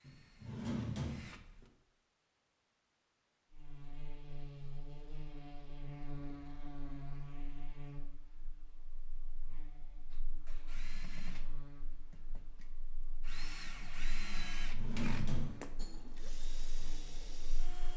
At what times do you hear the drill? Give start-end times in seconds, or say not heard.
0.0-1.7, 10.1-17.9.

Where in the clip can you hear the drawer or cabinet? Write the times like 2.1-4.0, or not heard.
0.0-1.6, 14.3-16.2.